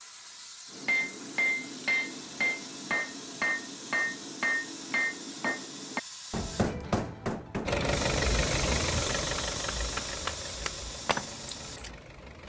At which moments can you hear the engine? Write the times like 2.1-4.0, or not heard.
7.7-12.4.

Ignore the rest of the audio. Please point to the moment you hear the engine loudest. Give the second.
8 s.